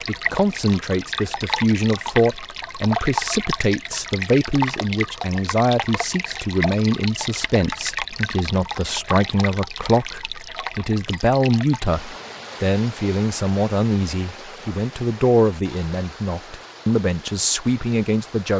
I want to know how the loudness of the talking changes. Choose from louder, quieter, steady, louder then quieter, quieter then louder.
steady.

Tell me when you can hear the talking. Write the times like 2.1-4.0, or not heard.
0.1-18.5.